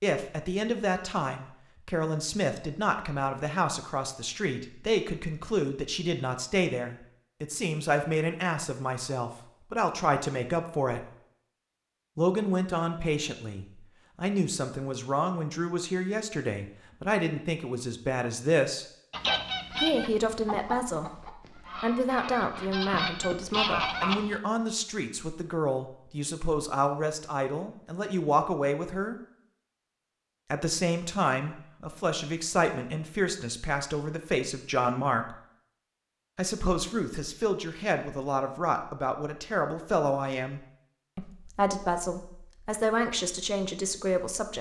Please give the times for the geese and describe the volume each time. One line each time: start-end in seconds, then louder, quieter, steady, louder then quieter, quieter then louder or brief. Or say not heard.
19.1-24.4 quieter then louder.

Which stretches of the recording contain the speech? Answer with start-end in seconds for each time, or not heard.
0.0-11.1, 12.2-18.9, 19.7-29.2, 30.5-35.4, 36.4-44.5.